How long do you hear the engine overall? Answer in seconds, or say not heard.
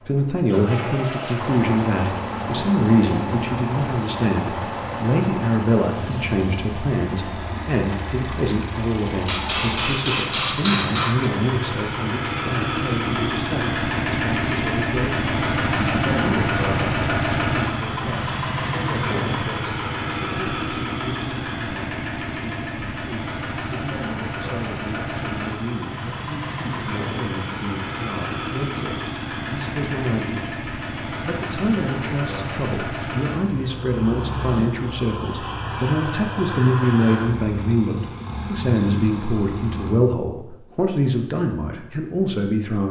40 s.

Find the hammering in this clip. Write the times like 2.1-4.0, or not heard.
9.2-11.3.